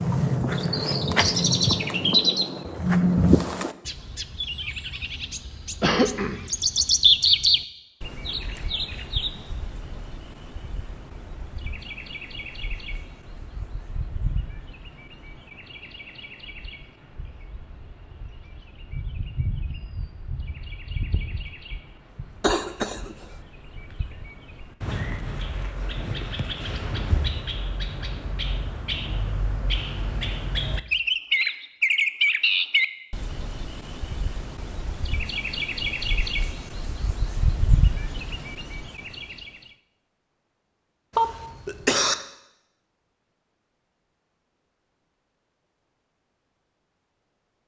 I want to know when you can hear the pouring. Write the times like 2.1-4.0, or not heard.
not heard.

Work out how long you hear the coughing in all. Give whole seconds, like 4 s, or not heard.
3 s.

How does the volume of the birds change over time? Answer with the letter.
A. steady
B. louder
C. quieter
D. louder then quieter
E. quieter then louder
E.